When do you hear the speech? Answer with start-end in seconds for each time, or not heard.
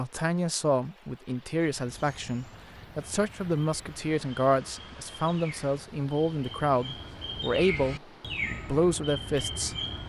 0.0-9.8.